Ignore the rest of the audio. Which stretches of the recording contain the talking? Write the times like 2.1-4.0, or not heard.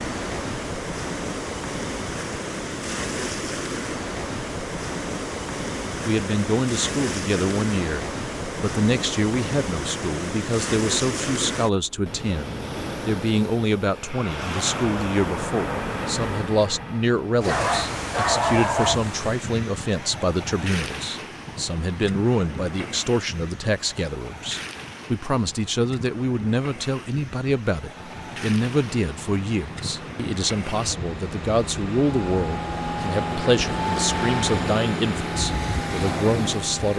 6.0-36.9.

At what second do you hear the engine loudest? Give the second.
34 s.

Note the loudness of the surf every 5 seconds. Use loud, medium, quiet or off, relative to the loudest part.
loud, loud, loud, loud, medium, medium, medium, loud.